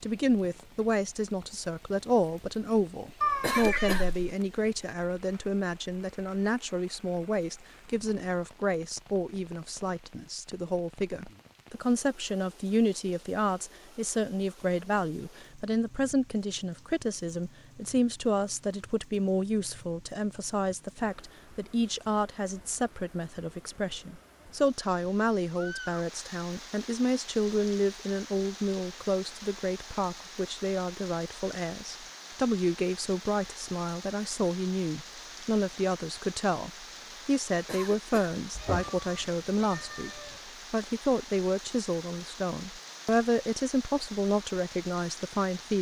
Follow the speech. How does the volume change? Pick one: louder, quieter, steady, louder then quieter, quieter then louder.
steady.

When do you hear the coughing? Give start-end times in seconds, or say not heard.
3.4-4.1, 37.6-38.4.